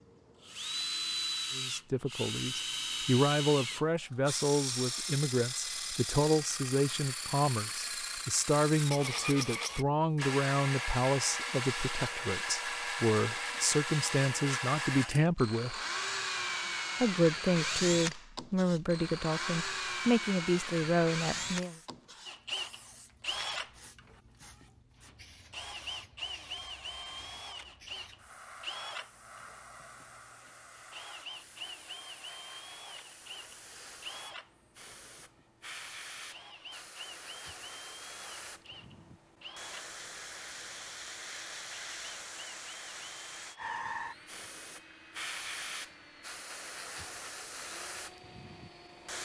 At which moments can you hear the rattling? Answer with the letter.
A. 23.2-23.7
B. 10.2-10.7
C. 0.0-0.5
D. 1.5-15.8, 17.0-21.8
A.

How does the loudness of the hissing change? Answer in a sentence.
The volume of the hissing goes up.